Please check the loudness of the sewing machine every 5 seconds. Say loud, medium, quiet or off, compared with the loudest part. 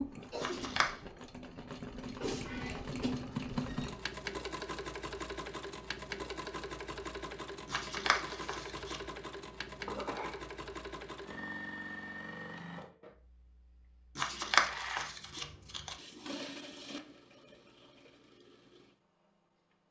loud, loud, medium, medium.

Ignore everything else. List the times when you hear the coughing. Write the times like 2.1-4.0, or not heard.
9.8-10.4.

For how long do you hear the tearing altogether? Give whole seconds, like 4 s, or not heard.
4 s.